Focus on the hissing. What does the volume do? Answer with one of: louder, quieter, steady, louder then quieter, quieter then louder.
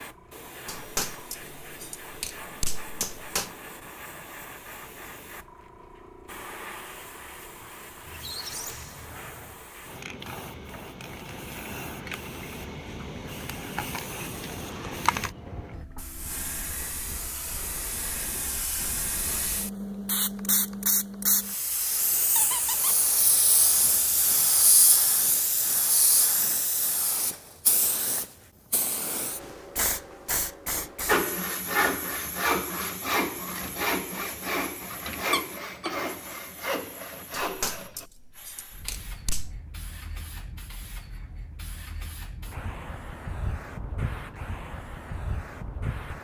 louder then quieter.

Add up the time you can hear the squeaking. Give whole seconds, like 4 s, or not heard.
3 s.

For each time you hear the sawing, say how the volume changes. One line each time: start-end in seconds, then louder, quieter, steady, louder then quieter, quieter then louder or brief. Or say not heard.
31.1-38.0 quieter.